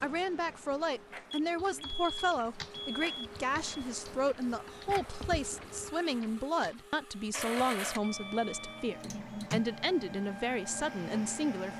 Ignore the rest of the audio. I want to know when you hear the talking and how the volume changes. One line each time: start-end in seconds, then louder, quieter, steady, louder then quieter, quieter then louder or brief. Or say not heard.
0.0-11.7 steady.